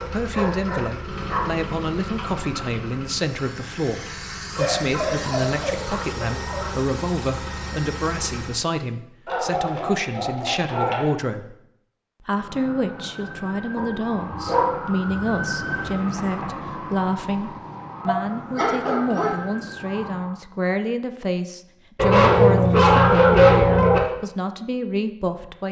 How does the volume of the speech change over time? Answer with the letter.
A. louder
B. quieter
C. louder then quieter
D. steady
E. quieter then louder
D.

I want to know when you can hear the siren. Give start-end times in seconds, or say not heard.
12.2-20.4.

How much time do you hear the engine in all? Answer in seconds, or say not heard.
9 s.